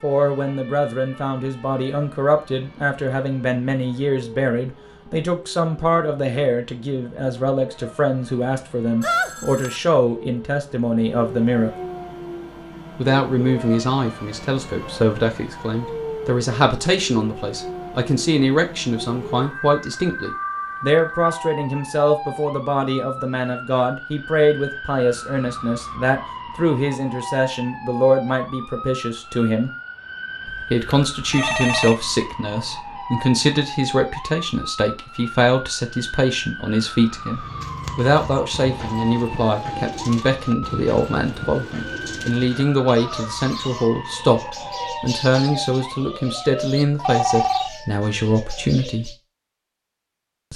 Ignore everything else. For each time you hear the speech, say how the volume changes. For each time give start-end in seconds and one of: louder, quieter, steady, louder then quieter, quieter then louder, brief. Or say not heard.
0.0-11.7 steady
12.9-29.7 steady
30.7-49.1 steady.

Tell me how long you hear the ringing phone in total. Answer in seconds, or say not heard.
3 s.